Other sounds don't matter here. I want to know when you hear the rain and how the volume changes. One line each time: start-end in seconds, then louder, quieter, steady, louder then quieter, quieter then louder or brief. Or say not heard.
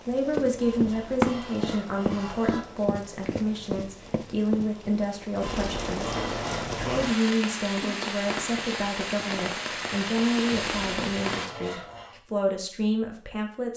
0.0-11.5 louder.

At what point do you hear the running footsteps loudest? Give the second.
1 s.